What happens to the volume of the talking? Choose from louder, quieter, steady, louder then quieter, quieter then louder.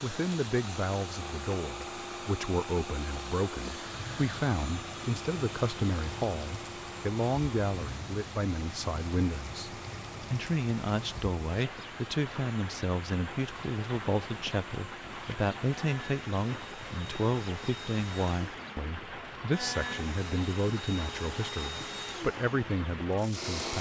steady.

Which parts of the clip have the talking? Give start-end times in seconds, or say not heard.
0.0-23.7.